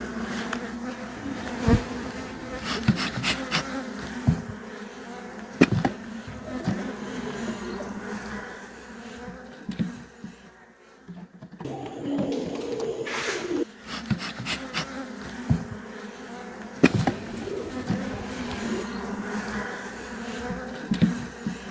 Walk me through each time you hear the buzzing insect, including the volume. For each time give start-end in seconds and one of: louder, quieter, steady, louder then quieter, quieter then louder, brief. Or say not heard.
0.0-21.6 quieter then louder.